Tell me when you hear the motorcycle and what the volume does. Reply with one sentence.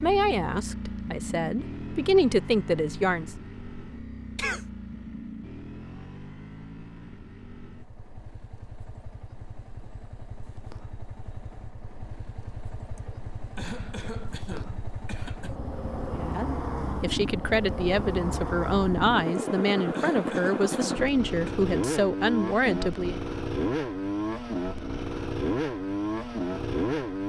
You can hear the motorcycle from 0.0 to 27.2 s, getting quieter then louder.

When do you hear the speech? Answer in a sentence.
You can hear the speech from 0.0 to 3.3 s and from 16.1 to 23.2 s.